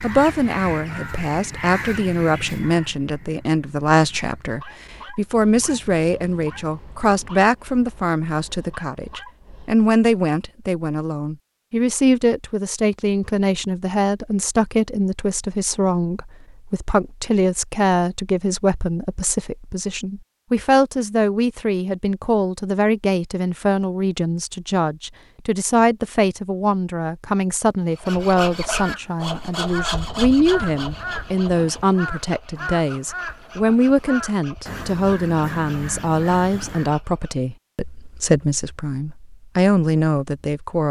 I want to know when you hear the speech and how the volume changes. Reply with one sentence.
You can hear the speech from 0.0 to 40.8 s, at a steady volume.